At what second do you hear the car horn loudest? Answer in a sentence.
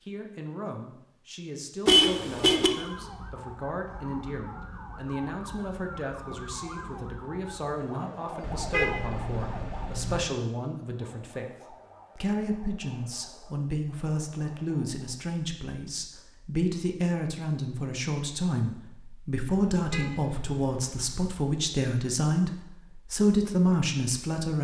The loudest moment of the car horn is at 2 seconds.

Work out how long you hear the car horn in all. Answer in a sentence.
The car horn can be heard for 4 seconds in total.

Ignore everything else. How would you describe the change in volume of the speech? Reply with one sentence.
The volume of the speech goes up.